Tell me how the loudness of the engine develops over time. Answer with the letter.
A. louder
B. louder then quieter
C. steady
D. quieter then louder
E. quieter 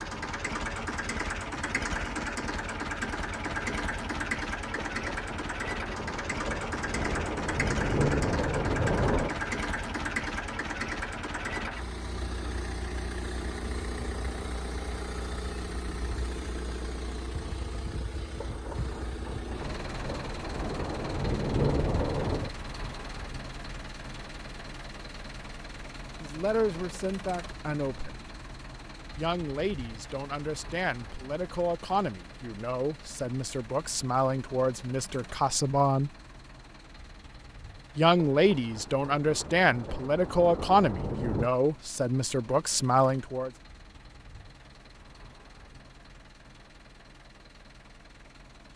E.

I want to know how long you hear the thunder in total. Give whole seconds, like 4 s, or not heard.
12 s.